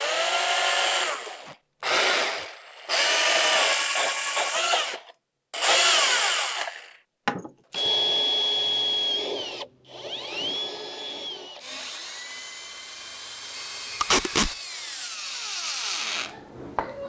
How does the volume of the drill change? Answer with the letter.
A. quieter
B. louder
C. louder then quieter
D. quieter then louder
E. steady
A.